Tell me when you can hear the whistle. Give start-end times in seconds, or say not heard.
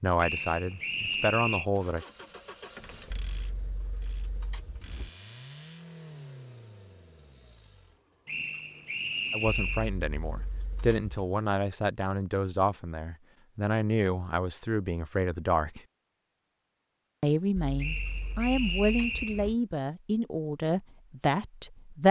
0.2-1.6, 8.2-9.9, 17.8-19.4.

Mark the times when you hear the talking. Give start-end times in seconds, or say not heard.
0.0-2.0, 9.3-15.8, 17.2-22.0.